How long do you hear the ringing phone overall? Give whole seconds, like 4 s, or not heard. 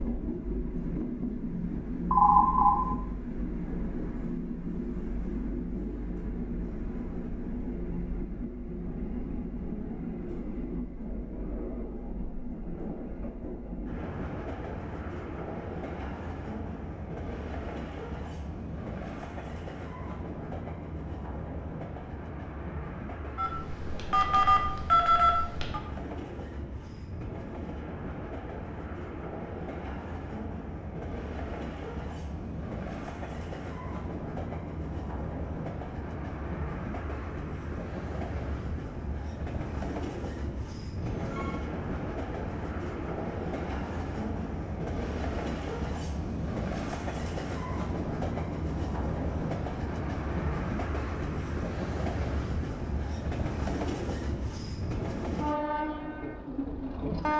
4 s.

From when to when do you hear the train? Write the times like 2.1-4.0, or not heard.
0.0-57.3.